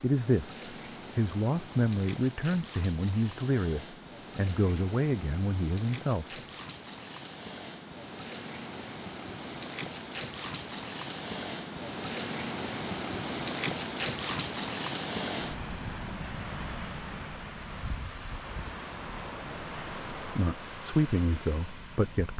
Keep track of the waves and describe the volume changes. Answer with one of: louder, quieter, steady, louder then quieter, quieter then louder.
louder then quieter.